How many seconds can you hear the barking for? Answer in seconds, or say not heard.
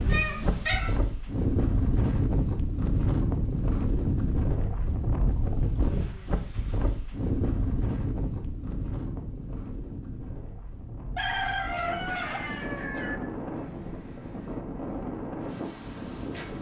not heard.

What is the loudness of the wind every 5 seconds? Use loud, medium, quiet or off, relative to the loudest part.
loud, loud, medium, medium.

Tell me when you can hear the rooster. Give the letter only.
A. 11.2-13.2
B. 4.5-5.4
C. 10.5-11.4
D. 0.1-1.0
A.